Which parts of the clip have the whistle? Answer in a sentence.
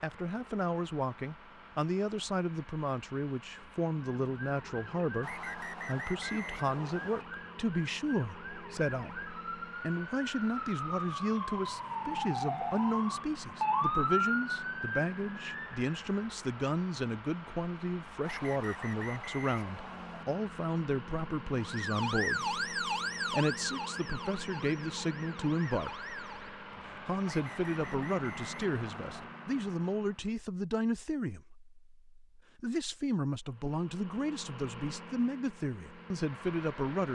You can hear the whistle from 5.2 to 7.2 s, from 18.2 to 20.2 s and from 27.2 to 29.2 s.